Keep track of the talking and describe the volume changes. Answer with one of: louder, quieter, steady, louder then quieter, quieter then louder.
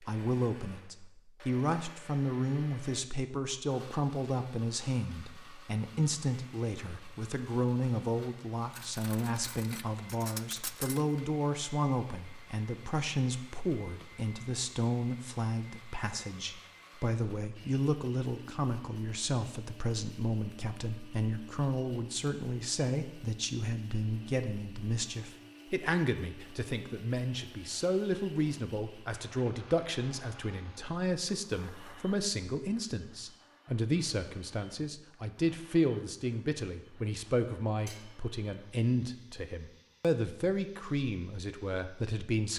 steady.